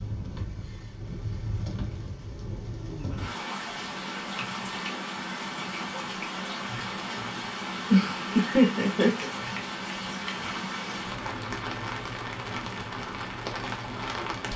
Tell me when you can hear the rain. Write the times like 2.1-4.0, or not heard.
0.0-14.5.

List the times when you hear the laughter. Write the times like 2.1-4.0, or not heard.
7.9-9.2.